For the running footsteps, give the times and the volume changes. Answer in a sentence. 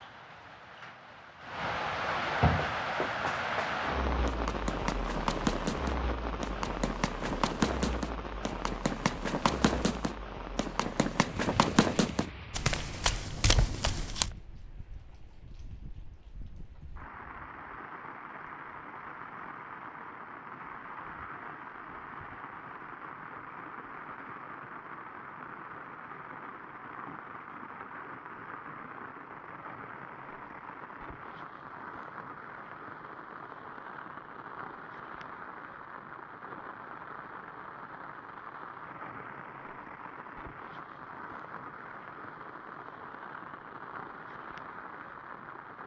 The running footsteps can be heard from 2.5 to 14.3 s, getting louder.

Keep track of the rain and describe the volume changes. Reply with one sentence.
The loudness of the rain goes down.